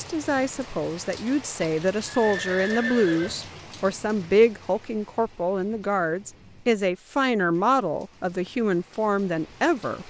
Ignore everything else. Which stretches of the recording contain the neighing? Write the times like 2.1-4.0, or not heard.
1.6-3.5.